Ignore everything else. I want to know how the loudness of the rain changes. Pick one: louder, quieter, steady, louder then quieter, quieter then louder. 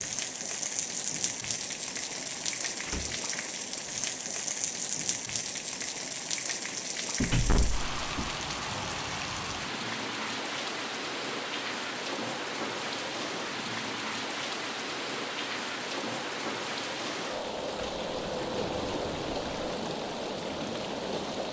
steady.